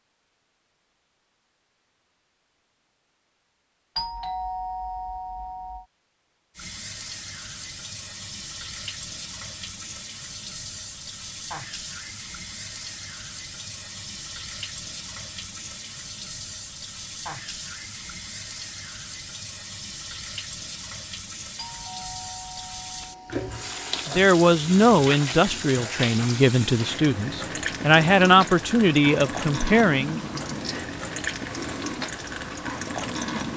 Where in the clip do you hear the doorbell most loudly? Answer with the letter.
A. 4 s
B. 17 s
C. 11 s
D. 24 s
A.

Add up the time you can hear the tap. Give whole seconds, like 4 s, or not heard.
27 s.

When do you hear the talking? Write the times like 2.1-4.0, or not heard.
24.1-30.3.